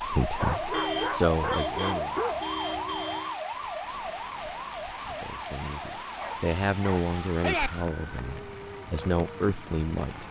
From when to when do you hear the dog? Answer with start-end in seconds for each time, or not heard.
0.4-2.4, 6.2-7.7.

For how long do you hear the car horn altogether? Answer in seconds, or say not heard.
3 s.